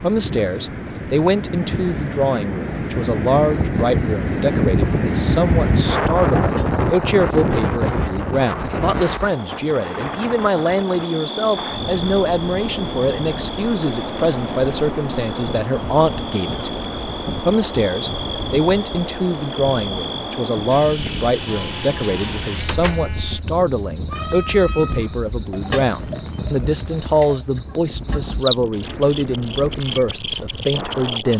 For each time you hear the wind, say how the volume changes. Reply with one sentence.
The wind can be heard from 0.0 to 31.3 s, getting quieter.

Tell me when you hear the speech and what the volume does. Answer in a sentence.
You can hear the speech from 0.0 to 31.3 s, at a steady volume.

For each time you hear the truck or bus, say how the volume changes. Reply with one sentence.
The truck or bus can't be heard in this clip.